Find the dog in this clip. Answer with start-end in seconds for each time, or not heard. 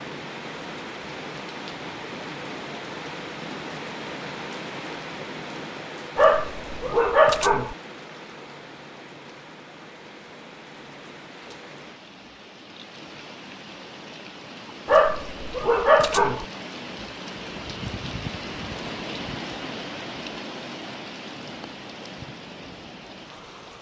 6.2-7.8, 14.8-16.4.